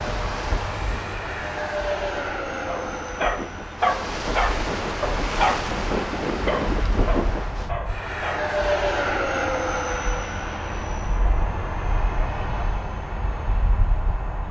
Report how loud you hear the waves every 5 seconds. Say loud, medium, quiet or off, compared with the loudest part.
medium, loud, off.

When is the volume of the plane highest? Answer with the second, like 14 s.
9 s.